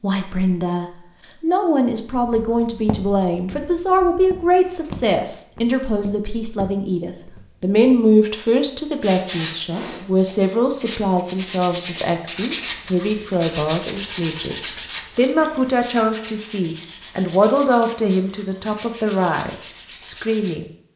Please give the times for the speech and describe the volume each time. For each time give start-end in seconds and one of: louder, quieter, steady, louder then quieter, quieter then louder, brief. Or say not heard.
0.0-20.6 steady.